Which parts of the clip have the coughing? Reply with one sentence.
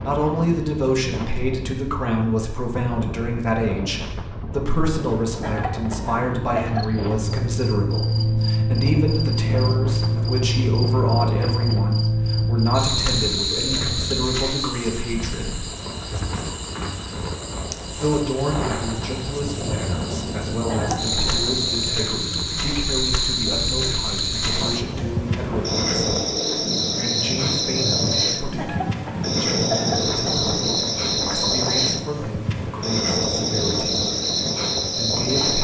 You can hear the coughing from 5.4 to 7.2 s, from 20.6 to 21.4 s and from 28.6 to 30.5 s.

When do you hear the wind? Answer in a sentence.
You can hear the wind from 0.0 to 35.5 s.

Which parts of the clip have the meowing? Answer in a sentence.
You can't hear the meowing here.